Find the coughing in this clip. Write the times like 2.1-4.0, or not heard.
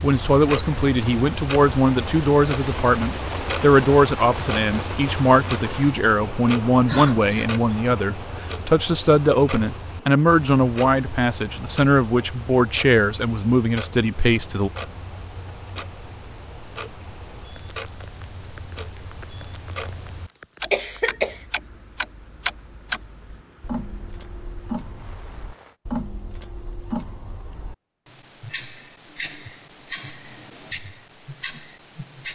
6.8-7.5, 20.7-21.4.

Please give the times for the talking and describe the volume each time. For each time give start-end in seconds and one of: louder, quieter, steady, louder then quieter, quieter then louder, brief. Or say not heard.
0.0-14.7 steady.